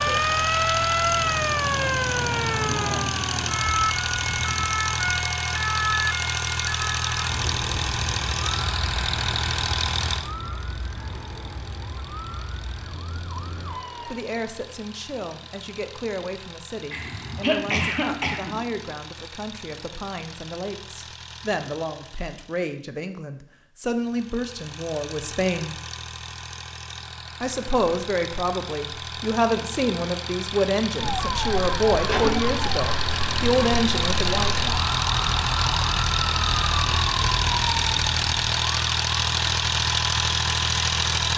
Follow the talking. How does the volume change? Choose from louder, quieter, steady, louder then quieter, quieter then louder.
louder.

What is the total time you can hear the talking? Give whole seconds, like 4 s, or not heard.
19 s.